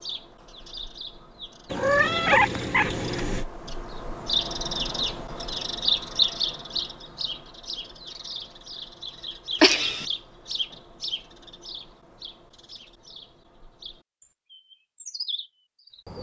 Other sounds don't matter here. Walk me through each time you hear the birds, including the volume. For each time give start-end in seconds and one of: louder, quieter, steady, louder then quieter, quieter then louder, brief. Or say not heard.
0.0-16.1 louder then quieter.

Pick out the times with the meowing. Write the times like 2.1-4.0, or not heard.
1.7-3.5, 9.6-10.1.